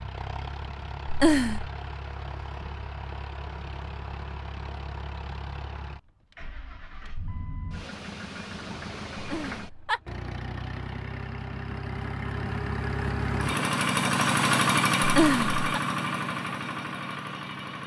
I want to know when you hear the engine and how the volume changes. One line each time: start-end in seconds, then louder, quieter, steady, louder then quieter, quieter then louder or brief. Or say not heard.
0.0-17.8 louder.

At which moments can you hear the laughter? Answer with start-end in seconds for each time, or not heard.
1.1-1.7, 9.2-10.0, 15.0-15.6.